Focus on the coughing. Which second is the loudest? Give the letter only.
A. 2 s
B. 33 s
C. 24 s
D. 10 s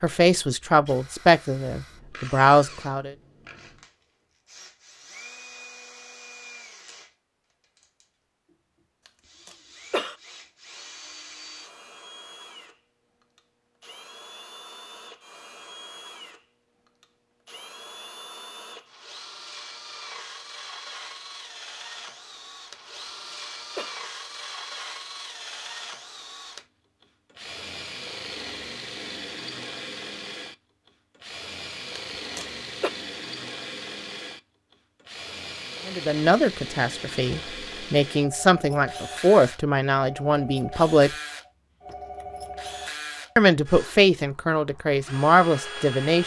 D.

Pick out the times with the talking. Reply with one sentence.
You can hear the talking from 0.0 to 3.1 s, from 35.9 to 41.1 s and from 43.4 to 46.2 s.